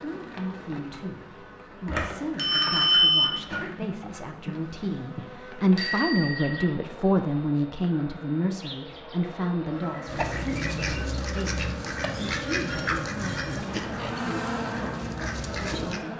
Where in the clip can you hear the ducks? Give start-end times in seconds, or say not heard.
10.1-16.0.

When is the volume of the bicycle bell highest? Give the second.
3 s.